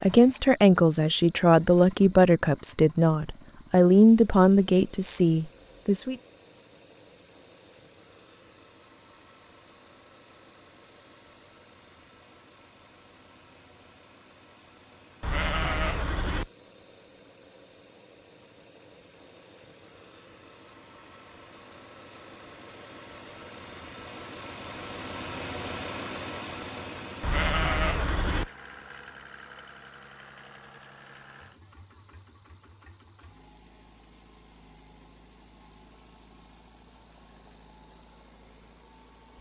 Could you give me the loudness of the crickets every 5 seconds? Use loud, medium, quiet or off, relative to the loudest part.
loud, loud, loud, medium, medium, loud, loud, loud.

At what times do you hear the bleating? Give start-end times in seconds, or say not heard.
15.2-16.5, 27.2-28.5.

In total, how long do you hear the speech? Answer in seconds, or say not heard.
6 s.